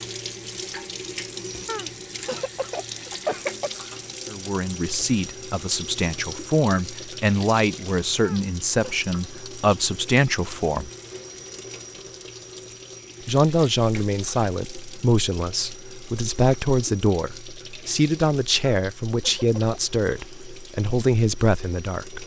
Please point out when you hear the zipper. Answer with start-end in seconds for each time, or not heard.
not heard.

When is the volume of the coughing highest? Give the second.
3 s.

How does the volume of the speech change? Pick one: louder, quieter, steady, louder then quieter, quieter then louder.
steady.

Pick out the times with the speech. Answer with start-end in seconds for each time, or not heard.
4.3-10.9, 13.2-22.2.